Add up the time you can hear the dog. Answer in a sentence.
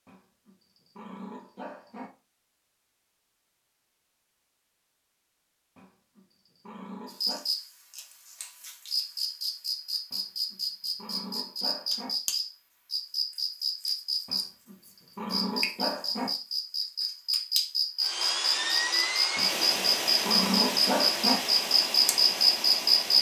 The dog can be heard for 10 seconds in total.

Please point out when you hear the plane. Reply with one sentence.
You can hear the plane from 18.0 to 23.1 s.